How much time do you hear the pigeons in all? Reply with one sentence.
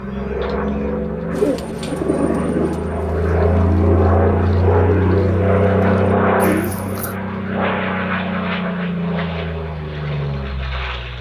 You can hear the pigeons for 6 seconds altogether.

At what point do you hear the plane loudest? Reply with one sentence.
The volume of the plane peaks at 6 seconds.